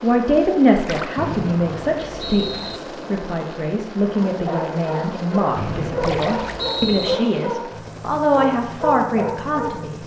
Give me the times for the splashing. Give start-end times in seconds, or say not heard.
0.8-1.2, 6.0-6.8.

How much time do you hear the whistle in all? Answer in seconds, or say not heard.
3 s.